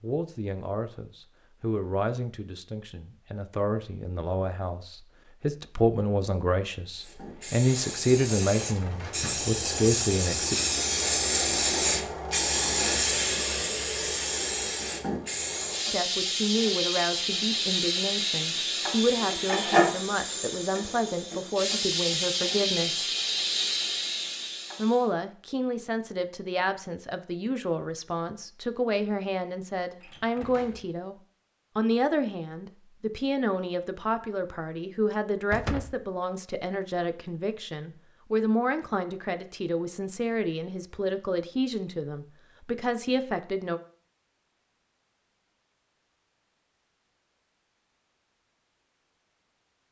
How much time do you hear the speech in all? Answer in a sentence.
The speech can be heard for 36 seconds in total.